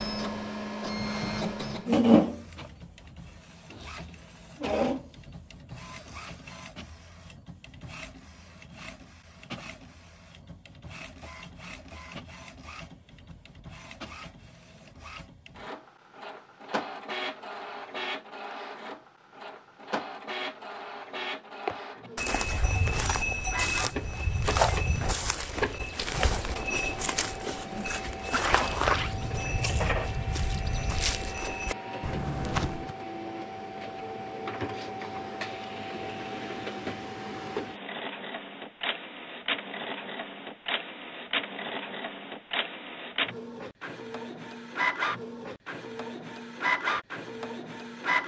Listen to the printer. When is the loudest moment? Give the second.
2 s.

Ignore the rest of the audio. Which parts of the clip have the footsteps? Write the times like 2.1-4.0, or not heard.
21.6-33.0.